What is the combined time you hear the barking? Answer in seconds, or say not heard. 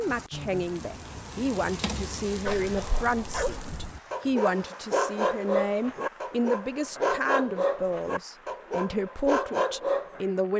8 s.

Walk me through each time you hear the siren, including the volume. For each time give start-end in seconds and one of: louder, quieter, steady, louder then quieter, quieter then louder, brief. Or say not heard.
not heard.